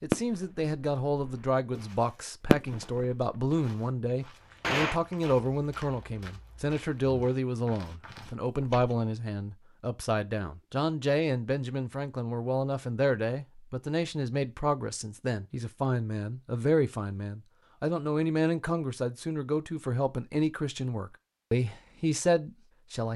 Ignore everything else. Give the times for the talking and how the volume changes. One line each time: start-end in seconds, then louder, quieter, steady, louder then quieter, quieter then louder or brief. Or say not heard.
0.0-23.1 steady.